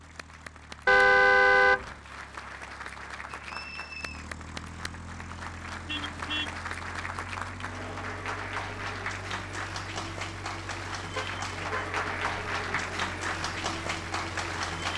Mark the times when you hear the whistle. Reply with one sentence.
You can hear the whistle from 3.5 to 4.3 s.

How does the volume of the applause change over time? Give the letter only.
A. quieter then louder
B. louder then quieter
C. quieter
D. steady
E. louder
E.